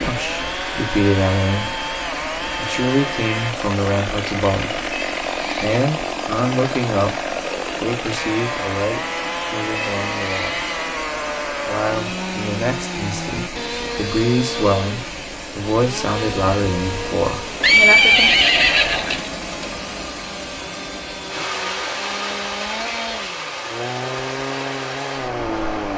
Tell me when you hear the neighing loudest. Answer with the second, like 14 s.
18 s.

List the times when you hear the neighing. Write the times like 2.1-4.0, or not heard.
4.9-5.8, 9.8-10.7, 17.6-19.3.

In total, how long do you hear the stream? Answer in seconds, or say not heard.
26 s.